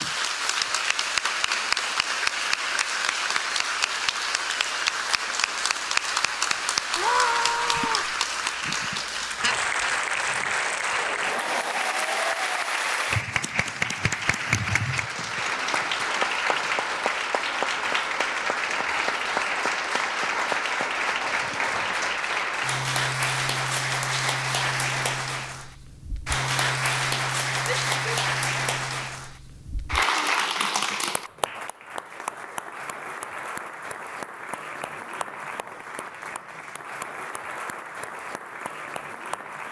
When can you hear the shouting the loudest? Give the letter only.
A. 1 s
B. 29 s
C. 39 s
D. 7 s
D.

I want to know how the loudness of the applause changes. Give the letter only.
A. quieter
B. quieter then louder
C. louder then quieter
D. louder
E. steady
A.